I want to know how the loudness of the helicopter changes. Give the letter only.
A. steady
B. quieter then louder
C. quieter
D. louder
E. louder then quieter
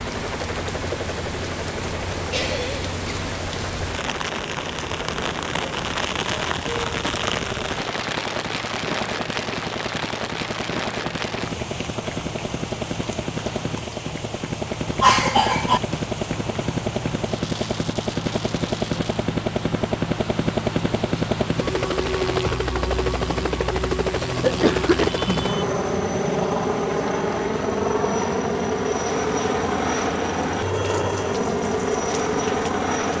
D.